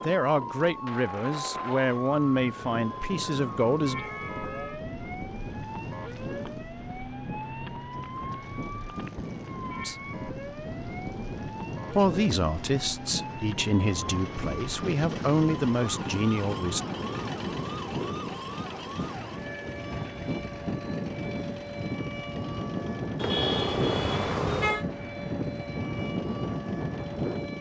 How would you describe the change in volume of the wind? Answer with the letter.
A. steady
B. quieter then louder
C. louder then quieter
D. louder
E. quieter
D.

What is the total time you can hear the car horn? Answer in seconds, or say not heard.
5 s.